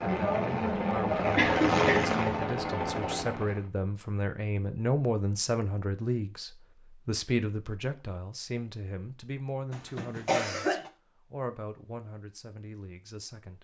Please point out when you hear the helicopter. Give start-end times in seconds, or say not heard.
0.0-3.6.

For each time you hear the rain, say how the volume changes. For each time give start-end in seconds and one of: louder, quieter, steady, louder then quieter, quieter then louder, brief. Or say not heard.
not heard.